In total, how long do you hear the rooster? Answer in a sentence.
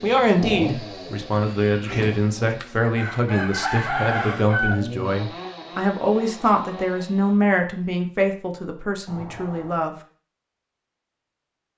The rooster can be heard for 3 seconds in total.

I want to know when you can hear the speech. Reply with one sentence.
You can hear the speech from 0.0 to 9.9 s.